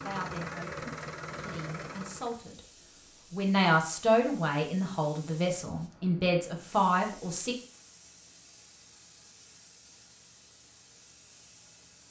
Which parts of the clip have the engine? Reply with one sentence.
You can hear the engine from 0.0 to 2.4 s.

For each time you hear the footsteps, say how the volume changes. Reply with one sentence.
The footsteps can't be heard in this clip.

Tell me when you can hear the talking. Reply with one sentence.
The talking can be heard from 0.0 to 2.6 s and from 3.3 to 7.5 s.